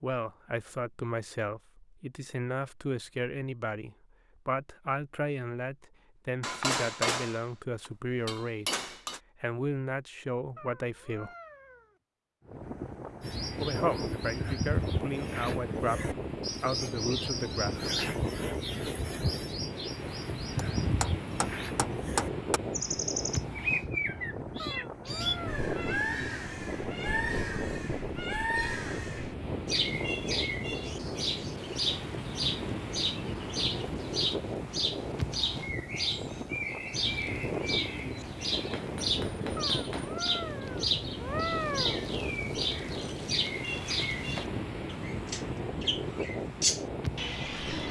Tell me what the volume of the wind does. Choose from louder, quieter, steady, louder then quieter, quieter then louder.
steady.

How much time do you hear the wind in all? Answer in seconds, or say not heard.
35 s.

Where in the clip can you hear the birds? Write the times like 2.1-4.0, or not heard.
13.2-47.8.